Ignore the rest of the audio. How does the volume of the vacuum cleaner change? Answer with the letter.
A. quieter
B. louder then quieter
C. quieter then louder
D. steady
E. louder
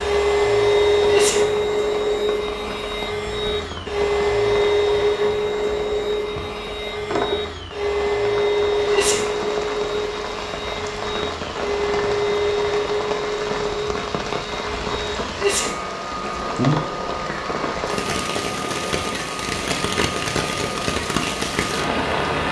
A.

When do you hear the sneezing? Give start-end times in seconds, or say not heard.
1.1-1.5, 8.8-9.3, 15.3-15.8.